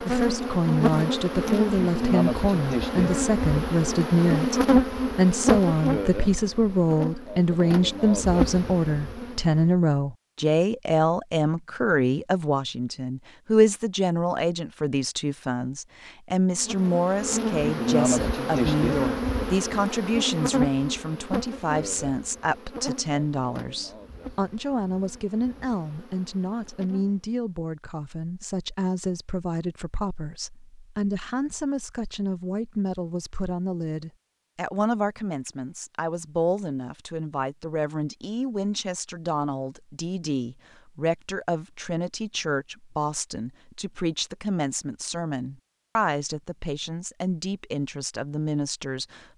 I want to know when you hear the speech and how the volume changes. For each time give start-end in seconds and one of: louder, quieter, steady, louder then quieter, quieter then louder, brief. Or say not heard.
0.0-49.2 quieter.